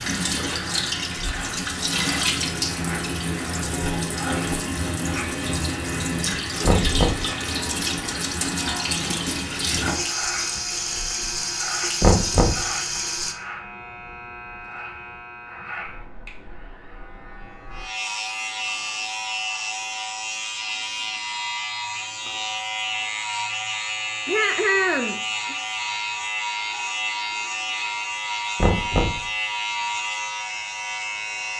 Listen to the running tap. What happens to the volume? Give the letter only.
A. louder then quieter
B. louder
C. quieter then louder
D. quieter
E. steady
E.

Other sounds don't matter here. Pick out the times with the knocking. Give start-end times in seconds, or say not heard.
6.6-7.3, 12.0-12.7, 28.6-29.2.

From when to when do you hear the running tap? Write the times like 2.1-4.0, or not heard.
0.0-13.3.